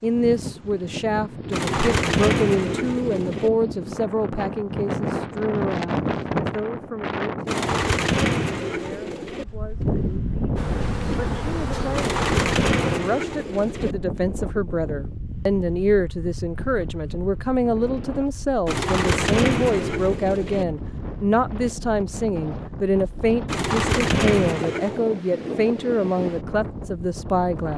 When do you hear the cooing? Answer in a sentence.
You can hear the cooing from 1.5 to 3.5 s, from 7.5 to 9.4 s, from 11.9 to 13.9 s, from 18.6 to 20.6 s and from 23.4 to 25.0 s.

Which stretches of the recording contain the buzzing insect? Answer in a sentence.
You can hear the buzzing insect from 10.6 to 13.0 s.